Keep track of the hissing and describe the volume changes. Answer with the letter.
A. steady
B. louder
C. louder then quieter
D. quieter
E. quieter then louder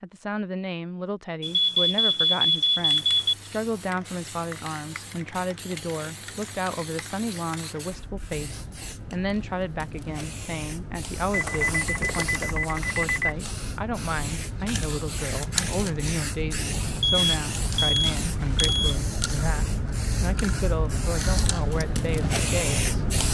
B.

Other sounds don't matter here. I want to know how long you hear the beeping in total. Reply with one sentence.
You can hear the beeping for 6 seconds altogether.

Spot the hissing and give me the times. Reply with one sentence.
You can hear the hissing from 2.8 to 23.2 s.